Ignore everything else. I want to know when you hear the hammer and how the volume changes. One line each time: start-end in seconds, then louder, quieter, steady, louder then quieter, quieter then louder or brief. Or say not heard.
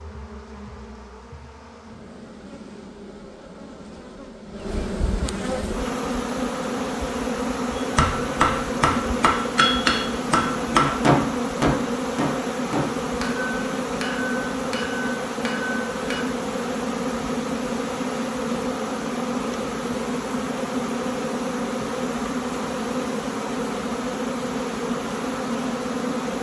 7.8-16.2 quieter.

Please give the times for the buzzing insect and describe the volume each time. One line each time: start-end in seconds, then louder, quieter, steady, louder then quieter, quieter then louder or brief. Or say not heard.
0.0-26.3 louder.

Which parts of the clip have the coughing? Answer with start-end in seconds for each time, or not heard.
not heard.